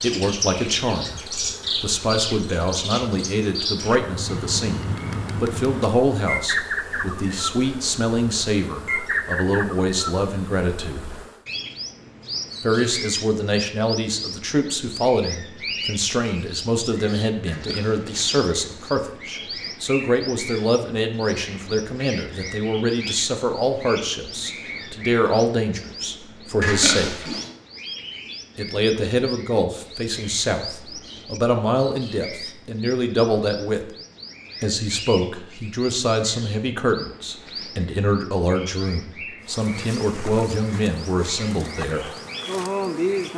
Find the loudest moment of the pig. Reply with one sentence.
The volume of the pig peaks at 27 seconds.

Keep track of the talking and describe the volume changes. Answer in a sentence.
The volume of the talking stays about the same.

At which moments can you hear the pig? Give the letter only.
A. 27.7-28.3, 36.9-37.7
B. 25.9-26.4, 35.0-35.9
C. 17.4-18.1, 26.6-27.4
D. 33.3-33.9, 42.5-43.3
C.